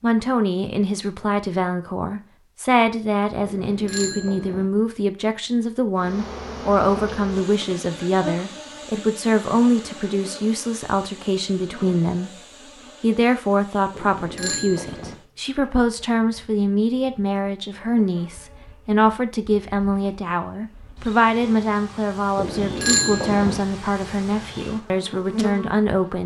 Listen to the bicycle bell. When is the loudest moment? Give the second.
23 s.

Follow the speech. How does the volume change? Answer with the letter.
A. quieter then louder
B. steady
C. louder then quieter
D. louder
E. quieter
B.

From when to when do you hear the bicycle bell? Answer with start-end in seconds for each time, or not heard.
3.5-4.7, 13.9-15.2, 22.4-23.6.